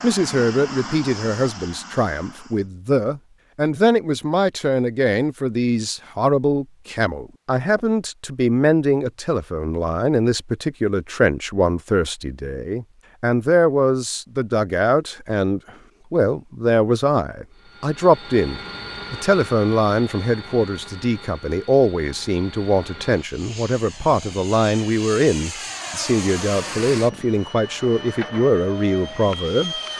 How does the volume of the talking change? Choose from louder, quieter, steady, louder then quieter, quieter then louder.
steady.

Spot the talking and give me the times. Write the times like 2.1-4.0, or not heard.
0.0-29.8.